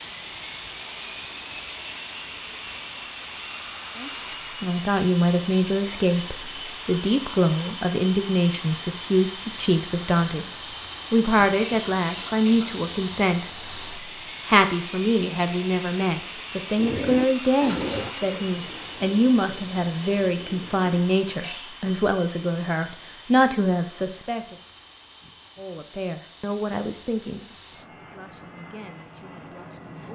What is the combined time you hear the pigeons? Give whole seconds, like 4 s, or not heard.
4 s.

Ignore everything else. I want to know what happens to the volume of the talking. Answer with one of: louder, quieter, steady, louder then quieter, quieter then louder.
quieter.